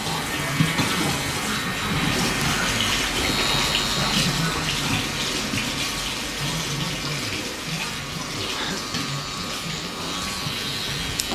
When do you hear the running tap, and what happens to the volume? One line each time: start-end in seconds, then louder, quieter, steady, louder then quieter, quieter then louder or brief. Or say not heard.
0.0-11.3 quieter.